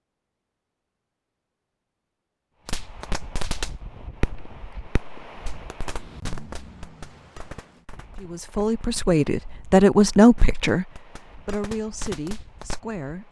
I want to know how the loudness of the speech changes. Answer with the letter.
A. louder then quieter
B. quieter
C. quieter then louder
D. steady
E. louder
A.